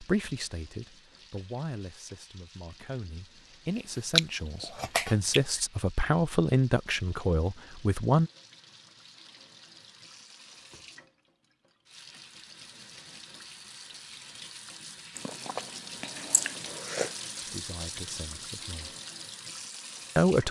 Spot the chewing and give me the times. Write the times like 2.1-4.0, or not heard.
3.8-5.4, 15.2-17.1.